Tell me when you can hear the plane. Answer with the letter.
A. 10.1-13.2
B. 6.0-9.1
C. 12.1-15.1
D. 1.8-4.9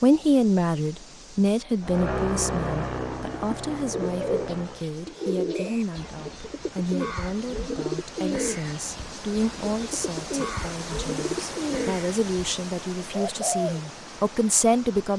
D.